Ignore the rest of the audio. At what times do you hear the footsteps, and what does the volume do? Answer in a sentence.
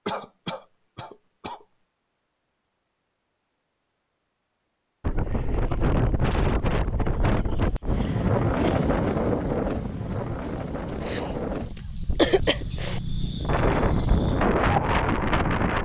You can't hear the footsteps here.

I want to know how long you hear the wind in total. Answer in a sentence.
The wind can be heard for 11 seconds in total.